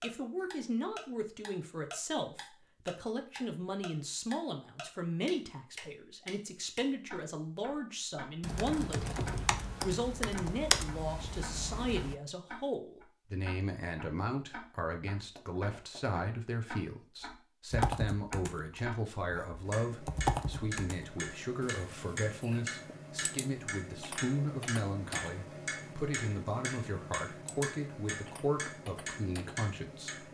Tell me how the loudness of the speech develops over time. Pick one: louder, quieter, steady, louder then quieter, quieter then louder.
steady.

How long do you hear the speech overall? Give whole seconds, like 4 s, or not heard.
30 s.